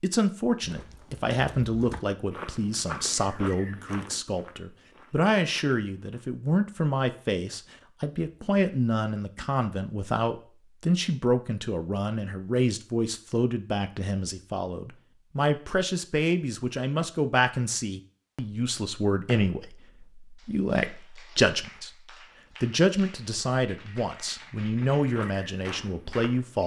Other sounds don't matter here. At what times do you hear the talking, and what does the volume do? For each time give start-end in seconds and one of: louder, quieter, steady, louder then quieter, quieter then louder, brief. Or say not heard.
0.0-26.6 steady.